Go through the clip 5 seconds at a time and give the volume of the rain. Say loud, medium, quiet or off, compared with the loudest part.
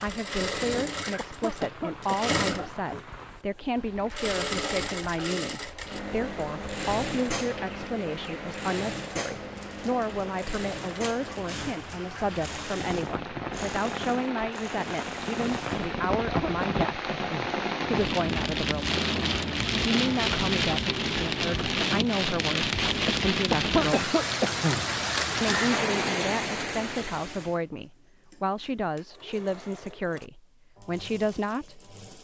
quiet, quiet, medium, loud, loud, loud, off.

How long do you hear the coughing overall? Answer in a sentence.
You can hear the coughing for 5 seconds altogether.